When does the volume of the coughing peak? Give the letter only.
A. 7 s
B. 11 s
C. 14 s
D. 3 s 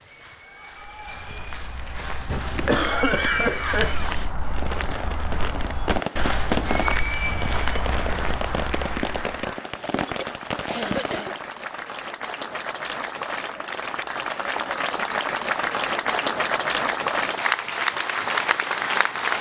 D.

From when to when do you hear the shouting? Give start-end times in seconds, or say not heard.
not heard.